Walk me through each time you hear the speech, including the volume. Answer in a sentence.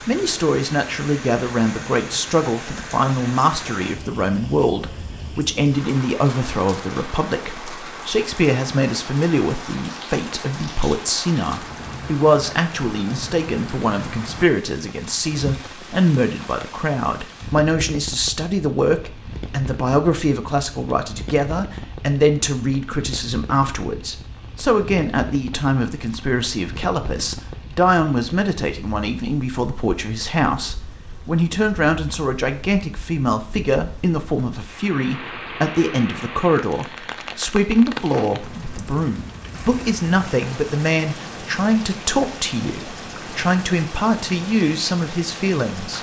You can hear the speech from 0.1 to 45.9 s, at a steady volume.